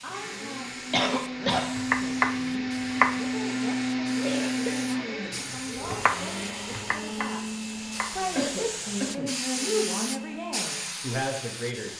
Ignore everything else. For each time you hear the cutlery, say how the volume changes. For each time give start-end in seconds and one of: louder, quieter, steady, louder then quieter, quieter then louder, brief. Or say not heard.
not heard.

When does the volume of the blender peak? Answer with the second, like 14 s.
4 s.